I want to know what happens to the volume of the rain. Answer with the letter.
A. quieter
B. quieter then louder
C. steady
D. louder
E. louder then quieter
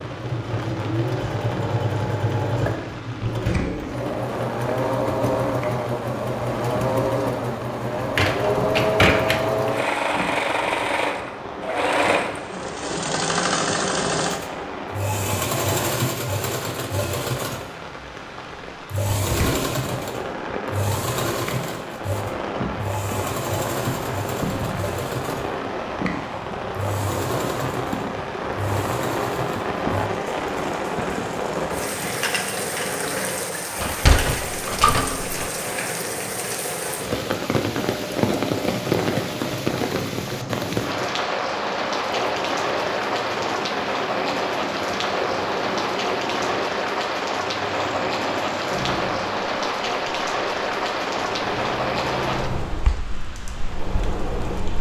D.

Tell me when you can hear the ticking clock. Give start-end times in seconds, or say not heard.
not heard.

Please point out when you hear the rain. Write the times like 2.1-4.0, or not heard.
0.0-54.7.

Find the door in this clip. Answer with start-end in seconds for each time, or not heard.
8.0-9.7, 33.8-35.5.